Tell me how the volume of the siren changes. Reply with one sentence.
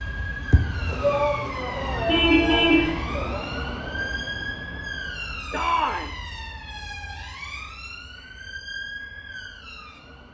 The volume of the siren goes down.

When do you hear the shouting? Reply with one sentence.
The shouting can be heard from 1.0 to 3.5 s and from 5.5 to 6.2 s.